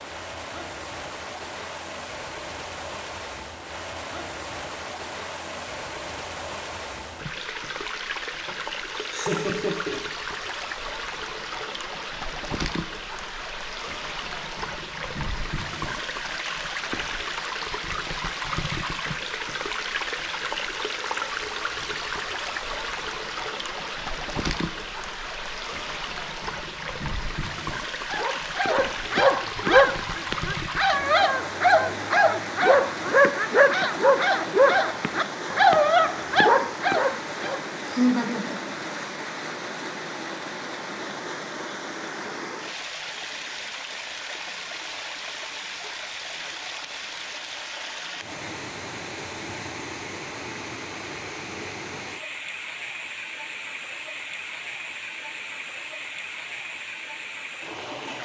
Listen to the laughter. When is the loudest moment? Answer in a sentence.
The volume of the laughter peaks at 38 seconds.